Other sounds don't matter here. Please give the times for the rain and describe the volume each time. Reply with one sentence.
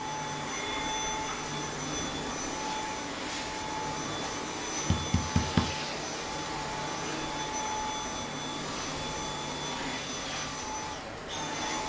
The rain can be heard from 0.0 to 11.8 s, at a steady volume.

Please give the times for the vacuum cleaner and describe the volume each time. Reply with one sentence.
The vacuum cleaner can be heard from 0.0 to 11.8 s, at a steady volume.